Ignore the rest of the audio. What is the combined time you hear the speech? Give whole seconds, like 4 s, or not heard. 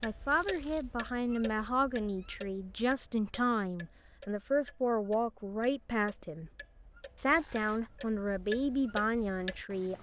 9 s.